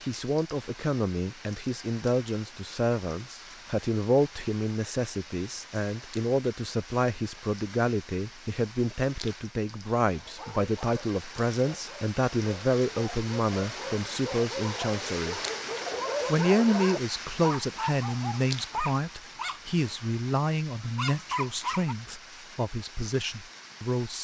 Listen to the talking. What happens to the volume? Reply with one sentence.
The loudness of the talking stays about the same.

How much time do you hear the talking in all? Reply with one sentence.
You can hear the talking for 23 seconds altogether.